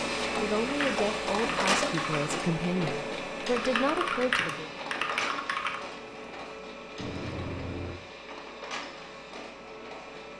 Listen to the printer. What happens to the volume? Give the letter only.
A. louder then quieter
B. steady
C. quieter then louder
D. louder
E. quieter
E.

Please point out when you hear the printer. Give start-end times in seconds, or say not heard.
0.0-10.3.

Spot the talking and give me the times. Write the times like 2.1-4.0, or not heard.
0.4-4.7.